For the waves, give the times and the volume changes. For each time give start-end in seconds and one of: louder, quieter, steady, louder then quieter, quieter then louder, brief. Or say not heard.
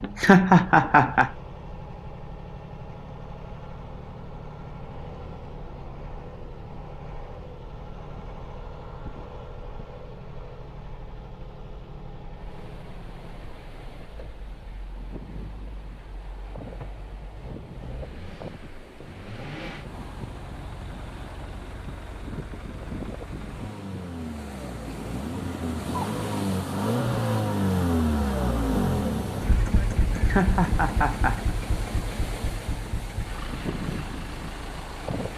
12.3-35.3 louder.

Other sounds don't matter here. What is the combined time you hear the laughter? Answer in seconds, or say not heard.
3 s.